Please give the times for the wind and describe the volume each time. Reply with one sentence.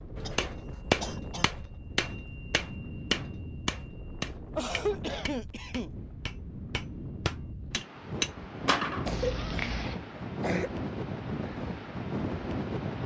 The wind can be heard from 0.0 to 13.0 s, getting louder.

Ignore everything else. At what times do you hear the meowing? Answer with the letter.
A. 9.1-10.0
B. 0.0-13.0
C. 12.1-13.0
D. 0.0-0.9
A.